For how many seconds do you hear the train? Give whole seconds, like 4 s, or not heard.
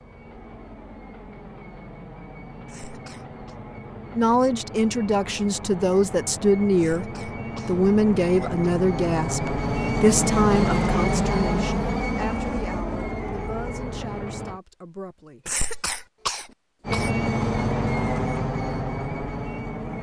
18 s.